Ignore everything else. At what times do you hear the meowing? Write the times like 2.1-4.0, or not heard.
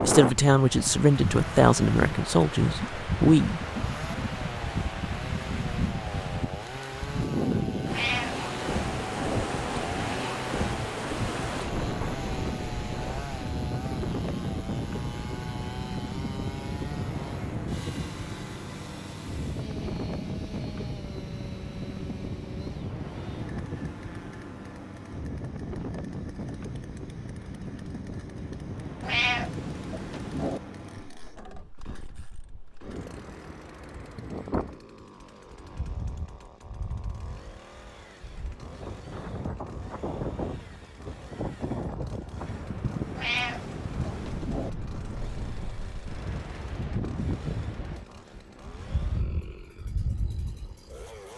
7.8-9.4, 29.0-30.6, 43.1-44.7.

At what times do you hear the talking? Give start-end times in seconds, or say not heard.
0.1-3.6.